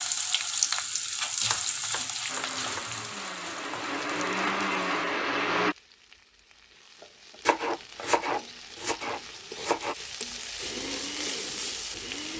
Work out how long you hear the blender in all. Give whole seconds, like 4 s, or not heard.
5 s.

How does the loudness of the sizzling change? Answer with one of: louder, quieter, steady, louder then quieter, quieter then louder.
quieter then louder.